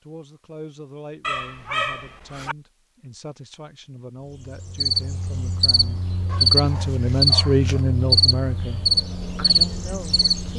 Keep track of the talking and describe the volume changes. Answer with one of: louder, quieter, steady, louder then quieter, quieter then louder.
louder then quieter.